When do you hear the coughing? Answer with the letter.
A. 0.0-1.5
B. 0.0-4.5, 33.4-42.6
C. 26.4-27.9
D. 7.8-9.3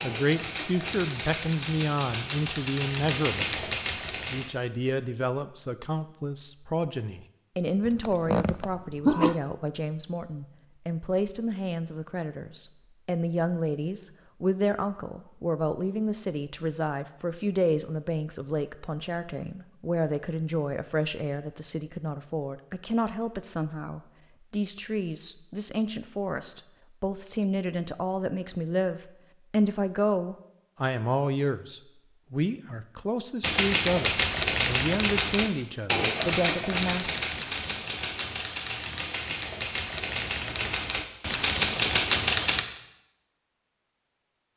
D.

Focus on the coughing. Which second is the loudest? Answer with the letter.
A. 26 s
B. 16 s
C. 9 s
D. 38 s
C.